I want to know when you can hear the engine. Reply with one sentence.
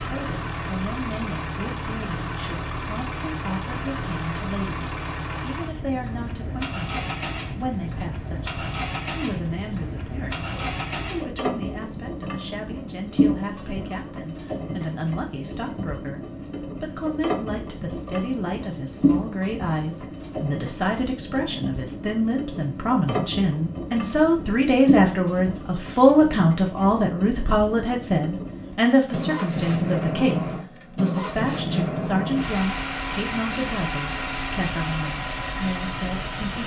The engine can be heard from 0.0 to 36.6 s.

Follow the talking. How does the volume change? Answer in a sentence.
The loudness of the talking goes up, then down.